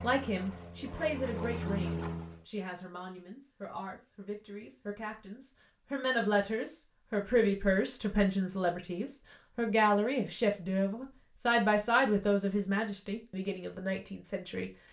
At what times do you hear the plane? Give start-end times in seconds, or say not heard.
0.0-2.5.